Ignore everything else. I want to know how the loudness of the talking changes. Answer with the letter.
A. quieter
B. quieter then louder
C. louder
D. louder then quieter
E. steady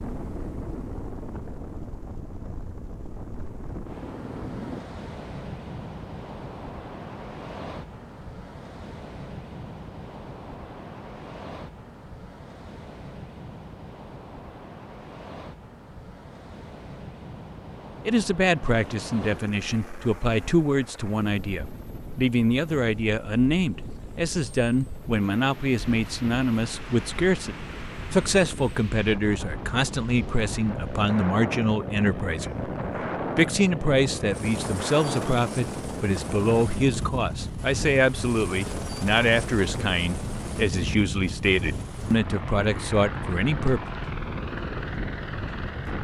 E.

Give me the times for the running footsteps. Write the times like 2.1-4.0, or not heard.
not heard.